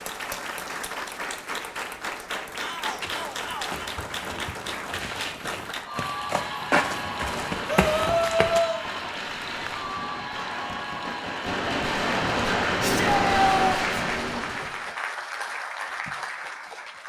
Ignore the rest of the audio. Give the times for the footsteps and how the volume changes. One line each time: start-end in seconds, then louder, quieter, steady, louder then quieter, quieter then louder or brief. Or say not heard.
2.9-8.7 louder.